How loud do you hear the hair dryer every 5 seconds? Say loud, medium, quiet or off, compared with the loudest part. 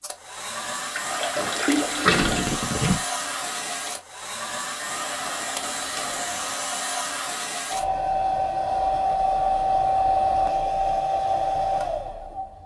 medium, loud, loud.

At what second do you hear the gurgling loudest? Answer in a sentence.
The loudest moment of the gurgling is at 2 seconds.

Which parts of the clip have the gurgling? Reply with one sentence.
The gurgling can be heard from 0.9 to 3.0 s.